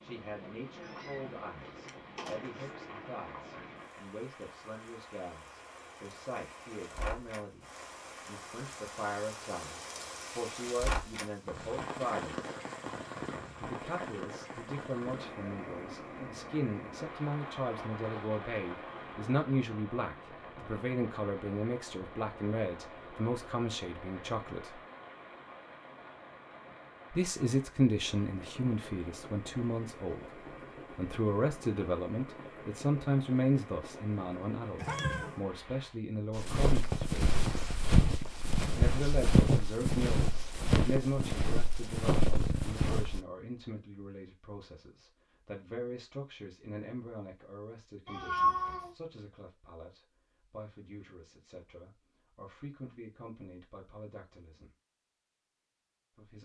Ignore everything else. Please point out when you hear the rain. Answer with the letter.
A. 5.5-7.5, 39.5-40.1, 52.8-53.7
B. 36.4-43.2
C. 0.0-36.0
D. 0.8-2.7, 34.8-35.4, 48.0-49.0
C.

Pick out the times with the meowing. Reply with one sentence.
You can hear the meowing from 0.8 to 2.7 s, from 34.8 to 35.4 s and from 48.0 to 49.0 s.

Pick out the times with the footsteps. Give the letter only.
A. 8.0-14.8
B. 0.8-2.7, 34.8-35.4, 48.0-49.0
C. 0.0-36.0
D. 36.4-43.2
D.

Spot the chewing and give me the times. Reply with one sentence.
You can't hear the chewing here.